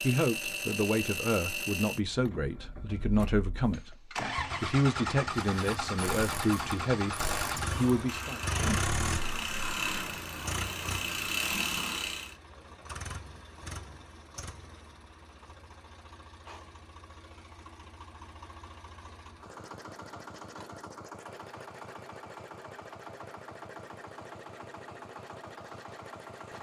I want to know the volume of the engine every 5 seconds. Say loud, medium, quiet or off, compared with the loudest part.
loud, loud, medium, quiet, medium, medium.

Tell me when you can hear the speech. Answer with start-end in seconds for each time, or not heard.
0.0-4.0, 4.6-7.2, 7.8-8.4.